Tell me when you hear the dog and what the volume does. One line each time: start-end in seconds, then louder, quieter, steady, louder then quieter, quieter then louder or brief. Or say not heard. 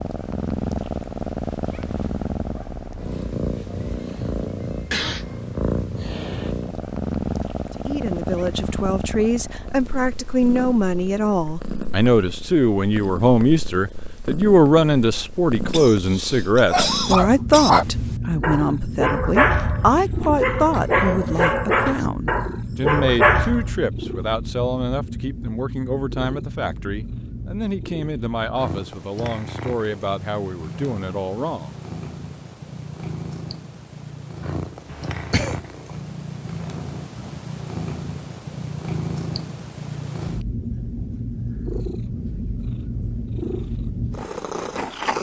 16.7-23.8 quieter then louder.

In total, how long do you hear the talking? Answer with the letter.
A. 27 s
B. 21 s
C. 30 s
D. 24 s
D.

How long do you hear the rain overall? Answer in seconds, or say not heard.
not heard.